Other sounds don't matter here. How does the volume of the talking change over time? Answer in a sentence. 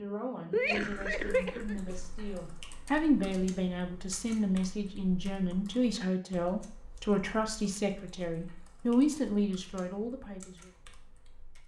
The volume of the talking goes up.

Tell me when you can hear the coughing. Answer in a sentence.
You can hear the coughing from 0.5 to 1.9 s.